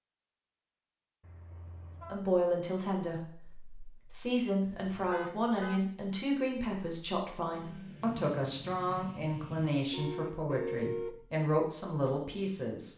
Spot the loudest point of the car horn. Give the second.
11 s.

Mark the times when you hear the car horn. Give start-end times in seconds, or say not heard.
1.2-2.3, 4.7-5.8, 9.9-11.2.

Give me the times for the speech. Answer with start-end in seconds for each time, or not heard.
2.1-12.9.